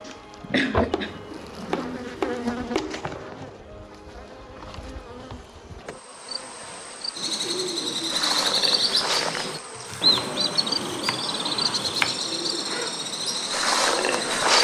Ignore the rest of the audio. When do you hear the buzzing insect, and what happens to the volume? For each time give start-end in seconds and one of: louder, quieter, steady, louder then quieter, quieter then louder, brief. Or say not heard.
0.0-14.6 quieter then louder.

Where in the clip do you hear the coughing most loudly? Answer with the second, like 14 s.
1 s.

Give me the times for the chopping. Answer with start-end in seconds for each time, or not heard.
0.9-3.0, 9.9-12.2.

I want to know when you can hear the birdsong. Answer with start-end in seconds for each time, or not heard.
7.2-14.6.